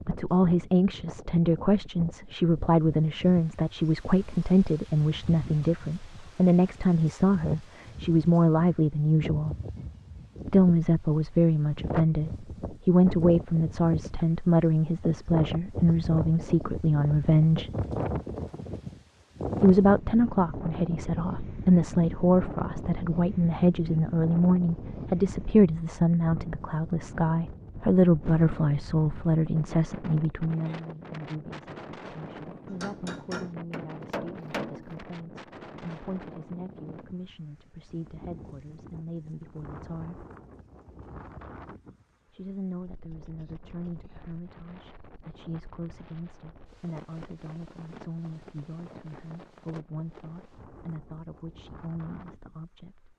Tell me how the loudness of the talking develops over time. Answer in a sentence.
The volume of the talking goes down.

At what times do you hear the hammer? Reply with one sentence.
You can hear the hammer from 32.6 to 35.0 s.